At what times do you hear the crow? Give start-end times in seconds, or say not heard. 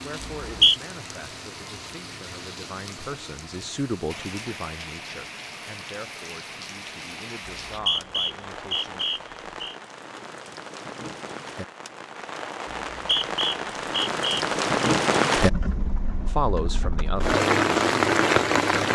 not heard.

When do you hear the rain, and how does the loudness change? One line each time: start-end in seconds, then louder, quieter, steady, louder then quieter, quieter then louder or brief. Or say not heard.
0.0-18.9 louder.